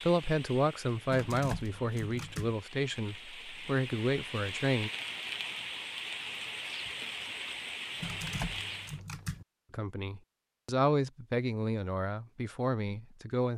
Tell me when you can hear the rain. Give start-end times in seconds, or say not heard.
0.0-9.0.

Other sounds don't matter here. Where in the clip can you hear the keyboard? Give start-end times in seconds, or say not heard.
1.1-2.5, 8.0-9.4.